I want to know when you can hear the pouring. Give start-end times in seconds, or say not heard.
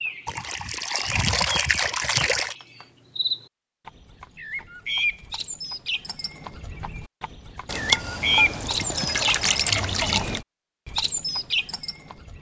0.2-2.5, 7.7-10.4.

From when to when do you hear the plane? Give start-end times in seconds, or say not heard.
not heard.